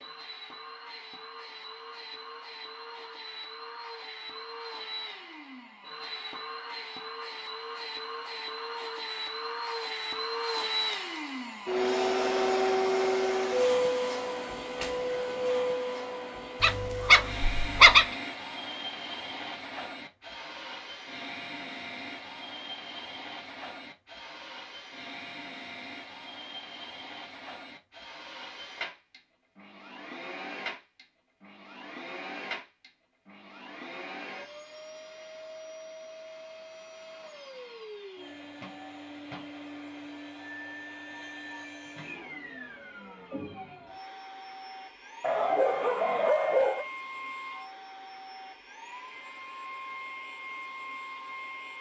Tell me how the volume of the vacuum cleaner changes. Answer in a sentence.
The loudness of the vacuum cleaner goes up, then down.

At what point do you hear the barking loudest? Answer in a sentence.
The loudest moment of the barking is at 18 seconds.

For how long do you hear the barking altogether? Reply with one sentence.
You can hear the barking for 3 seconds altogether.